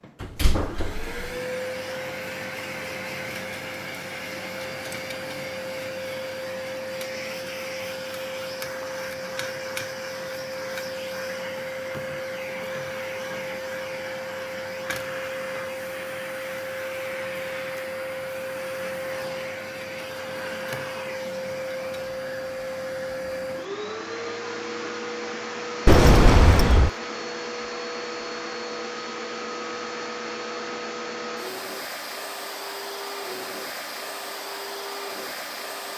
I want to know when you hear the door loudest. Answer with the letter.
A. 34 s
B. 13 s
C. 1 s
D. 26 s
D.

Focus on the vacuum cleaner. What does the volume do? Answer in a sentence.
The volume of the vacuum cleaner stays about the same.